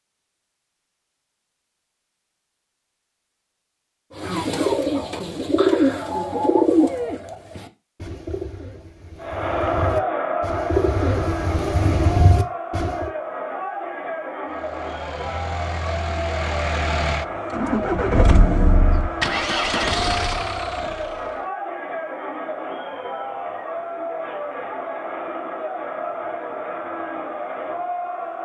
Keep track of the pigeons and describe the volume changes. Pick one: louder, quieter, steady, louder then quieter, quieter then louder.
quieter then louder.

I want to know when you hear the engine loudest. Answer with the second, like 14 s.
18 s.